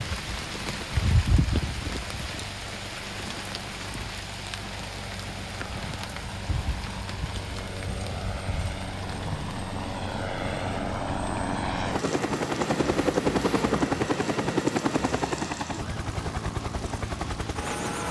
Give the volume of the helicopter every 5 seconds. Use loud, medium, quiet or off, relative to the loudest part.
quiet, medium, loud, medium.